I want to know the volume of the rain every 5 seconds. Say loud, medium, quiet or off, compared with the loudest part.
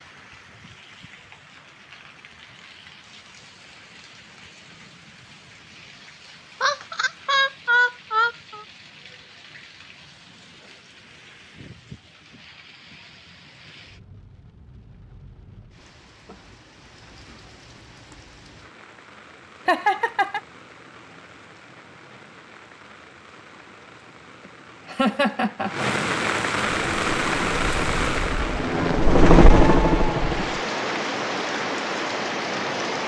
quiet, quiet, quiet, quiet, quiet, loud, loud.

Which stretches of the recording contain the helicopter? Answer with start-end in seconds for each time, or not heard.
26.7-30.6.